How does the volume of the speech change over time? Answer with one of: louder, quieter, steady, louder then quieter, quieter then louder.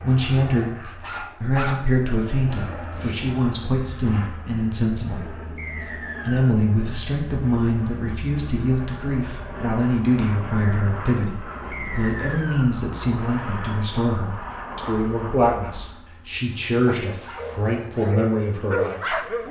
steady.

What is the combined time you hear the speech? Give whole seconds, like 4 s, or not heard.
19 s.